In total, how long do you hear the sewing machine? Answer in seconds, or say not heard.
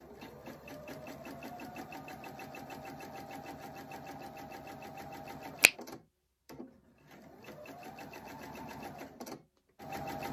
10 s.